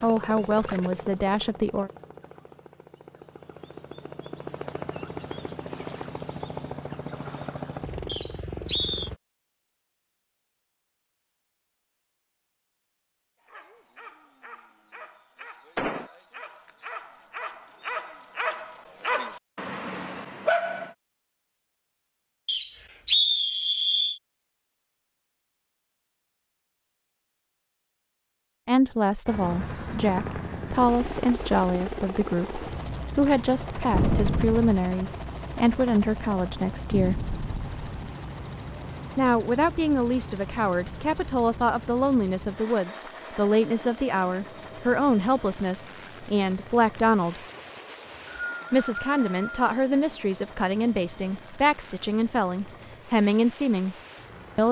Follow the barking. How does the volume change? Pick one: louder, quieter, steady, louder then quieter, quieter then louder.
louder.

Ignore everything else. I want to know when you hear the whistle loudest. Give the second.
23 s.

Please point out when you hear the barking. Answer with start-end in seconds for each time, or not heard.
13.4-20.9.